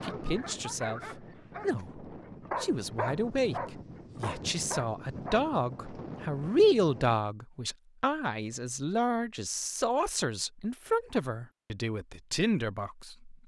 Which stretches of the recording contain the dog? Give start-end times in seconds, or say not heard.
0.0-5.5.